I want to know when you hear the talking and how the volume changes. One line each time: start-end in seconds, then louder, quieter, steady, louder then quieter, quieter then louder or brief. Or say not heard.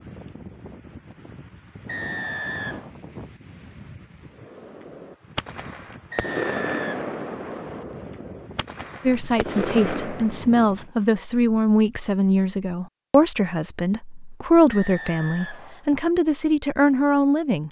9.0-17.6 steady.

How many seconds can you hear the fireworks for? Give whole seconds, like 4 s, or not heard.
6 s.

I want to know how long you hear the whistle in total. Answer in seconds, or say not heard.
4 s.